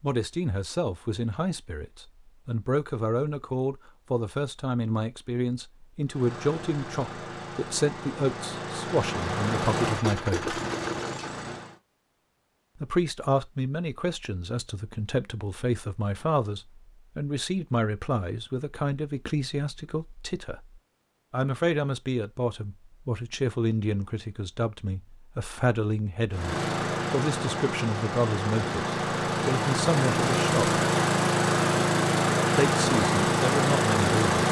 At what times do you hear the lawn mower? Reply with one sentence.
You can hear the lawn mower from 6.0 to 11.8 s and from 26.3 to 34.4 s.